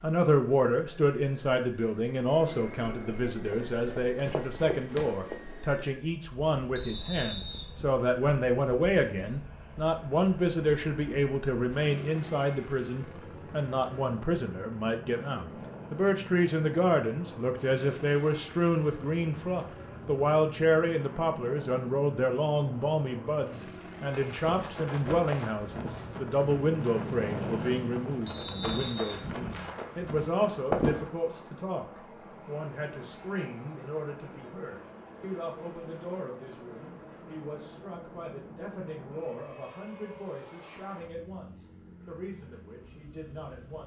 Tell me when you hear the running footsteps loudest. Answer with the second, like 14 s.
31 s.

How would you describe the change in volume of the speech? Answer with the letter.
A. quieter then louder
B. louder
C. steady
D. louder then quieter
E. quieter
E.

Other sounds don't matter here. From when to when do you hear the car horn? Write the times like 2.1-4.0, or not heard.
not heard.